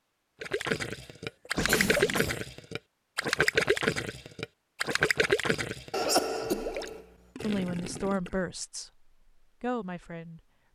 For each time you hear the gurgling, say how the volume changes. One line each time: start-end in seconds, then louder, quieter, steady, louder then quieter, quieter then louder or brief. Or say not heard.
0.4-8.4 quieter.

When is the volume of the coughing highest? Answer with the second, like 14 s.
6 s.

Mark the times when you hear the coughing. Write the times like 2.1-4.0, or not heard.
1.4-2.5, 5.9-7.0.